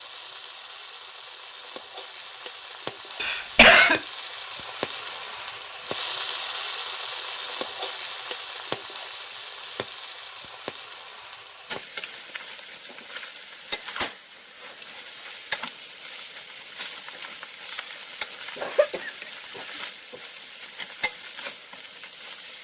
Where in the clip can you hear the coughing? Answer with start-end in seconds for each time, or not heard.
3.2-4.0, 18.6-20.1.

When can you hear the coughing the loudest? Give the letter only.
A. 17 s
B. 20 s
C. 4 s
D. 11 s
C.